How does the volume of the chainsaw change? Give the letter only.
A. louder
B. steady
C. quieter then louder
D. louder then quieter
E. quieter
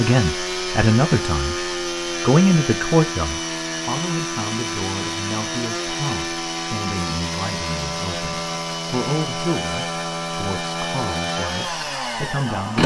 B.